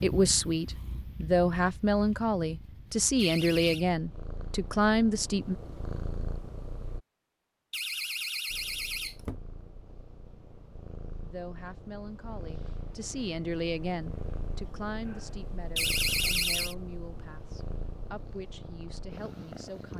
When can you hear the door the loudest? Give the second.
16 s.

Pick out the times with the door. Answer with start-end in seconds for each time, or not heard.
3.1-3.9, 7.7-9.4, 15.8-16.8.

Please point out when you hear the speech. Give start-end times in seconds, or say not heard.
0.0-5.5, 11.2-19.9.